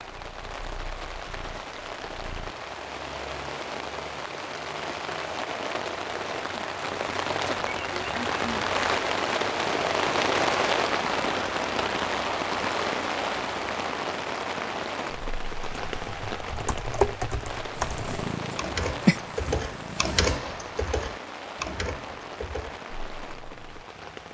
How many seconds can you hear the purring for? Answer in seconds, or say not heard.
5 s.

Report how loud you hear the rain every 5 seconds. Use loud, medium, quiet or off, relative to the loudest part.
medium, loud, loud, medium, quiet.